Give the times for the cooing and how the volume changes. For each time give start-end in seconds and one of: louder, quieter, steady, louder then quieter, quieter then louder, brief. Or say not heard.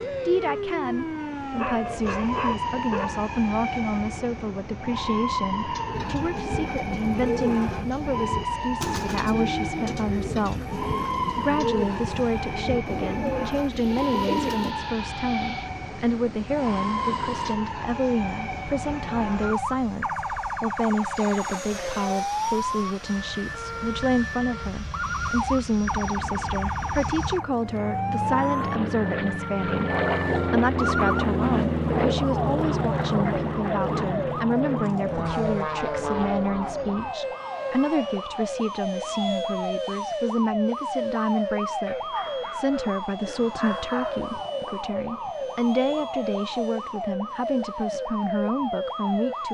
5.8-14.8 steady.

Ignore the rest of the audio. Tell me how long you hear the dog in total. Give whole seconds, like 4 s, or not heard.
4 s.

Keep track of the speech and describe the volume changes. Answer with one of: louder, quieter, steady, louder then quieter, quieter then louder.
steady.